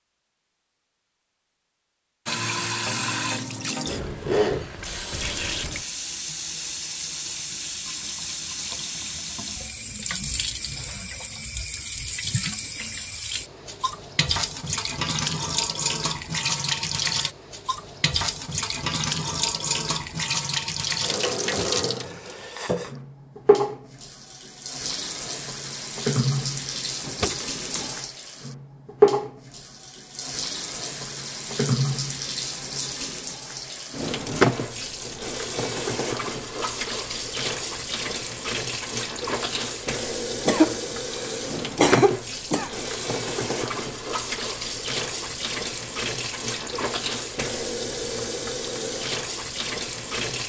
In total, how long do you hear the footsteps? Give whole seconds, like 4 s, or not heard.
not heard.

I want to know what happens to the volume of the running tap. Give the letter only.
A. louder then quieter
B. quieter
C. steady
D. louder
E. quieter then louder
C.